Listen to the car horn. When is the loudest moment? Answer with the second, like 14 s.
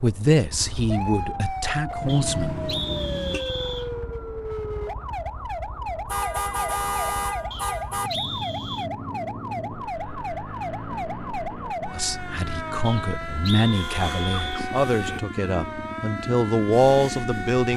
7 s.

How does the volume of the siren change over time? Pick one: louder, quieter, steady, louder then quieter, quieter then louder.
steady.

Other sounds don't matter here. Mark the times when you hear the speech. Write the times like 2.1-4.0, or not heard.
0.0-2.7, 11.9-17.7.